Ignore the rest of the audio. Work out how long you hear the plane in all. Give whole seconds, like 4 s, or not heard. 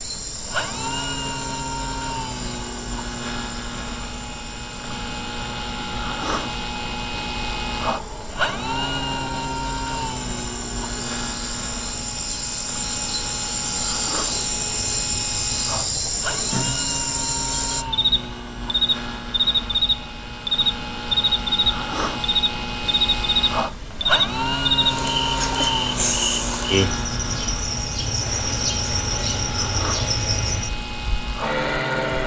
32 s.